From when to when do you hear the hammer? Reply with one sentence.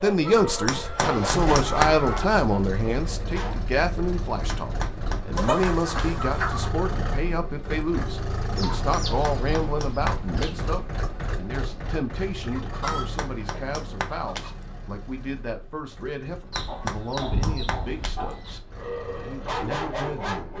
You can hear the hammer from 0.7 to 2.2 s, from 4.5 to 6.0 s, from 8.9 to 10.6 s, from 12.8 to 14.5 s and from 16.5 to 18.4 s.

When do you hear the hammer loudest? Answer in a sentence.
The volume of the hammer peaks at 2 seconds.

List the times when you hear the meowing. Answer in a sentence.
You can't hear the meowing here.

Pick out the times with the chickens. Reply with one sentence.
You can hear the chickens from 0.2 to 2.3 s, from 5.3 to 6.7 s, from 8.6 to 10.7 s, from 12.5 to 14.5 s and from 16.5 to 18.6 s.